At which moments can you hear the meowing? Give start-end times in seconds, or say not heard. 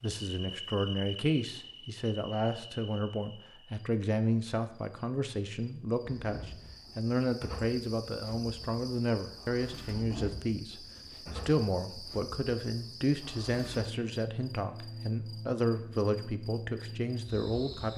not heard.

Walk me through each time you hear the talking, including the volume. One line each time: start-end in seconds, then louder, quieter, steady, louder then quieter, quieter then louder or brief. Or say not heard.
0.0-17.9 steady.